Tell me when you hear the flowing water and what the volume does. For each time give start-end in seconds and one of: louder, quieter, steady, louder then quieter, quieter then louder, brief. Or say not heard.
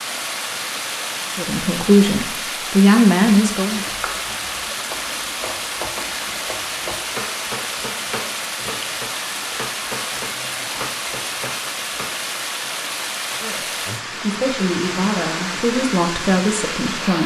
0.0-17.2 steady.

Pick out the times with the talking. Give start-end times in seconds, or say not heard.
1.3-3.9, 13.4-17.2.